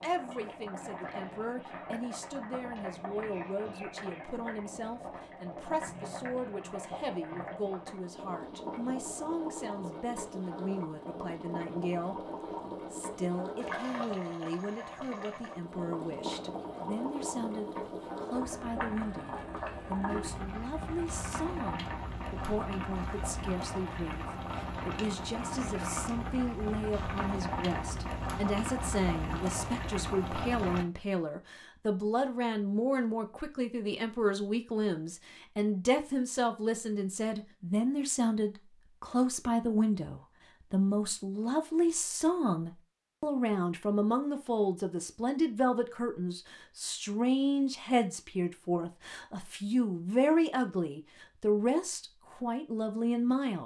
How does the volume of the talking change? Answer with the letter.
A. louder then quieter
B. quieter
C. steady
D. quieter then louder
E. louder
E.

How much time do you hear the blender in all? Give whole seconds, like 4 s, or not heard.
not heard.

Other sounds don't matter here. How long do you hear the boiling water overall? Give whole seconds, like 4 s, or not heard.
31 s.